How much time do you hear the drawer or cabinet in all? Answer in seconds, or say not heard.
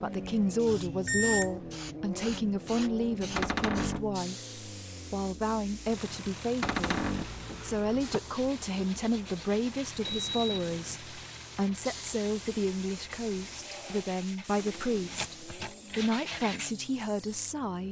2 s.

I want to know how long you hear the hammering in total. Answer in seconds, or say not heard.
not heard.